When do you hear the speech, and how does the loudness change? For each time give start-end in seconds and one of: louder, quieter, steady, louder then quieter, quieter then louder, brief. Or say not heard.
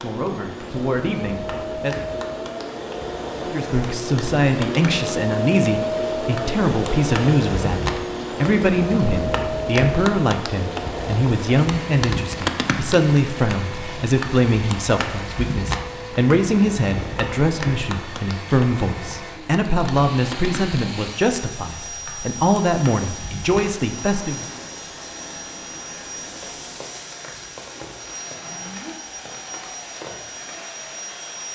0.0-1.9 brief
3.5-24.4 steady.